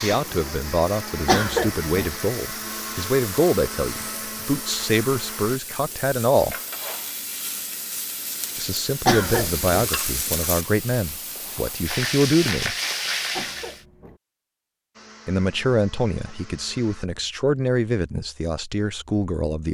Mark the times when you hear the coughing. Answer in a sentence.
The coughing can be heard from 1.2 to 2.1 s, from 9.1 to 9.9 s and from 13.3 to 14.2 s.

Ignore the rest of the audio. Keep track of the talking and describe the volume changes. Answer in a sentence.
The volume of the talking stays about the same.